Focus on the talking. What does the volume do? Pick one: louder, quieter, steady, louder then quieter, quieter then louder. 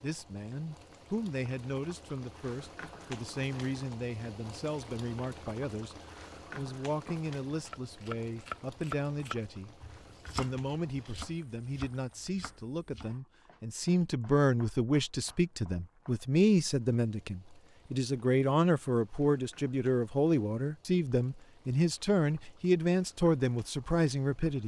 louder.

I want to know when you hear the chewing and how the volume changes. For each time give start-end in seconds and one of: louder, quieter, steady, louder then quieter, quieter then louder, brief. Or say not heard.
not heard.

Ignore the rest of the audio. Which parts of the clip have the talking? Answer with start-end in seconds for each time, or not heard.
0.0-24.6.